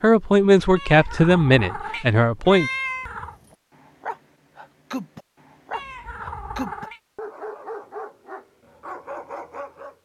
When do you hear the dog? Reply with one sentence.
You can hear the dog from 3.4 to 9.9 s.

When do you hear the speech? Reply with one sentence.
The speech can be heard from 0.0 to 2.7 s.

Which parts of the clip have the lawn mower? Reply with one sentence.
The lawn mower can't be heard in this clip.